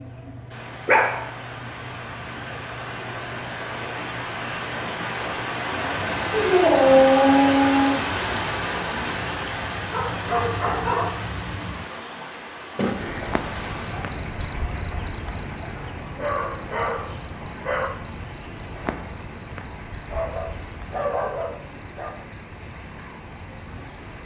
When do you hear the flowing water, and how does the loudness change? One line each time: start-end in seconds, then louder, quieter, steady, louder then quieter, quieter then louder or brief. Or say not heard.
0.0-24.2 louder then quieter.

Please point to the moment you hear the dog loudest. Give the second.
7 s.